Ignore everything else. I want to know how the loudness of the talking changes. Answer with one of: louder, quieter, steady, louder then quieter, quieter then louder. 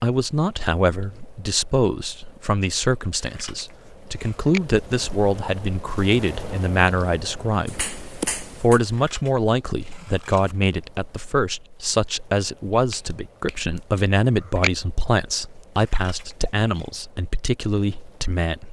steady.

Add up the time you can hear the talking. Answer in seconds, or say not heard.
18 s.